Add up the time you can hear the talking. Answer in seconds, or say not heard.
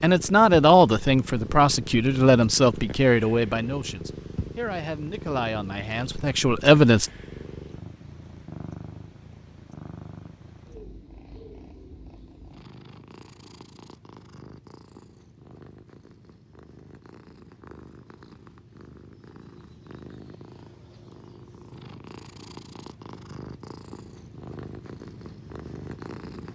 7 s.